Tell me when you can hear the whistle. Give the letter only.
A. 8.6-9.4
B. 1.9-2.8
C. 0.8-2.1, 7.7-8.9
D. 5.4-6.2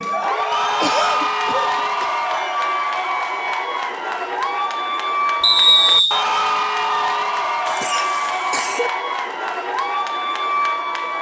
D.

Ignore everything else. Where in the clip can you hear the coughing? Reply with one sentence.
You can hear the coughing from 0.8 to 2.1 s and from 7.7 to 8.9 s.